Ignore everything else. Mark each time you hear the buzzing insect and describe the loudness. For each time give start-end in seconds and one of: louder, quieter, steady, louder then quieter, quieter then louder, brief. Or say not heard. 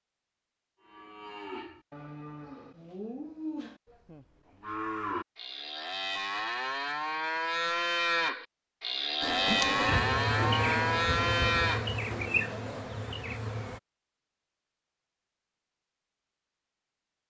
9.2-13.8 quieter.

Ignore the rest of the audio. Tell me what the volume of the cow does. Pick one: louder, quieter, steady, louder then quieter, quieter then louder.
louder.